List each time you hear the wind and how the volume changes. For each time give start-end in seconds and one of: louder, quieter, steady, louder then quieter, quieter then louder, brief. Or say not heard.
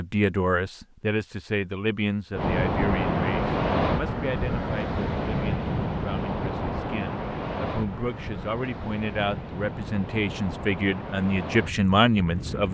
2.3-12.7 quieter.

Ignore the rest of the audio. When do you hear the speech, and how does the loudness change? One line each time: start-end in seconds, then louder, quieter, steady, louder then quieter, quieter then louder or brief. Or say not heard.
0.0-12.7 quieter then louder.